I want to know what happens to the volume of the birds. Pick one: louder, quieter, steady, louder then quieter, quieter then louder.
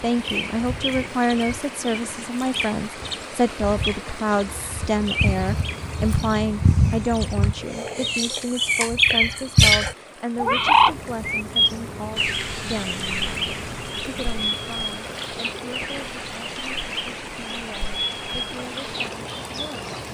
louder then quieter.